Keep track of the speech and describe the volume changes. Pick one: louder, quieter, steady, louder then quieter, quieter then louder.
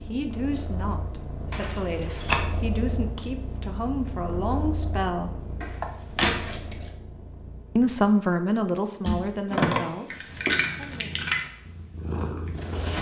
louder then quieter.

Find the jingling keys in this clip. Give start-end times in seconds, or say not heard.
1.5-2.5, 5.6-7.0, 9.5-11.5.